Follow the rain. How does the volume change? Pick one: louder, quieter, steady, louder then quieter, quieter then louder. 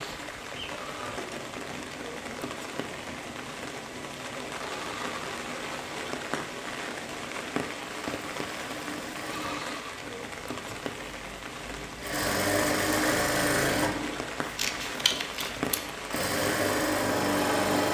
steady.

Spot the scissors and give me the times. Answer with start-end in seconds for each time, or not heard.
14.6-15.9.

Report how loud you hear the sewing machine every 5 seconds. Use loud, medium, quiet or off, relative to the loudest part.
quiet, quiet, loud, loud.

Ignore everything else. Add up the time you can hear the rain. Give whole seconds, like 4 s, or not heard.
18 s.